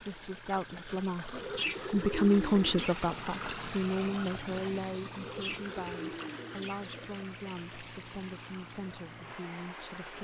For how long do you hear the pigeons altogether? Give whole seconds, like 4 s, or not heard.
4 s.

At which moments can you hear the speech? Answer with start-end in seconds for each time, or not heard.
0.0-10.1.